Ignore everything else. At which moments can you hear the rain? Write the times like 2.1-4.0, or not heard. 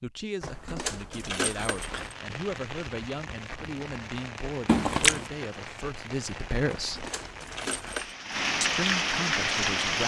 1.8-10.0.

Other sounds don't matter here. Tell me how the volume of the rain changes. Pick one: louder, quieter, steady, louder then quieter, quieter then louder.
louder.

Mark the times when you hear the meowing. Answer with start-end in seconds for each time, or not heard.
4.7-5.2.